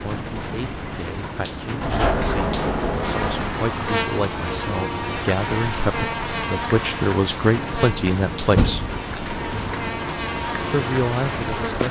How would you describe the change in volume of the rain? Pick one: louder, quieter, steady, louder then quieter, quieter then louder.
steady.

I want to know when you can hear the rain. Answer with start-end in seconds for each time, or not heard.
0.0-11.8.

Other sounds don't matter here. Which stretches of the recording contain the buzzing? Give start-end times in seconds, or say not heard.
3.0-11.8.